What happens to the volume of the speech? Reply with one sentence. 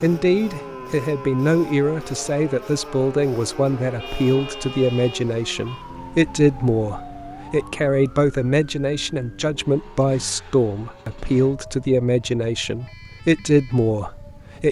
The volume of the speech stays about the same.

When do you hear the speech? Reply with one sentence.
The speech can be heard from 0.0 to 14.6 s.